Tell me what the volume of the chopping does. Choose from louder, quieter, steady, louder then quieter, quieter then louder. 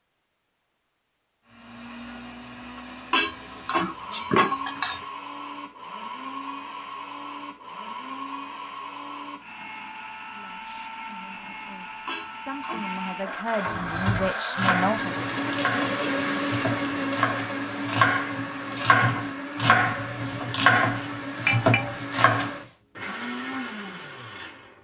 louder.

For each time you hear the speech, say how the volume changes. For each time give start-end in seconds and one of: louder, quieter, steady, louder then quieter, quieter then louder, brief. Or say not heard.
10.3-15.2 louder.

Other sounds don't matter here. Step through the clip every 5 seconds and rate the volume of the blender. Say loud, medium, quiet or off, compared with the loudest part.
medium, medium, medium, loud, medium.